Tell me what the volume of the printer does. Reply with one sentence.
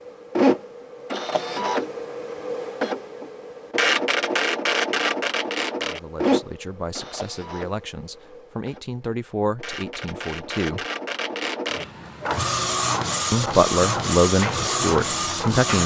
The loudness of the printer goes down, then up.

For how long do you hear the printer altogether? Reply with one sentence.
The printer can be heard for 16 seconds in total.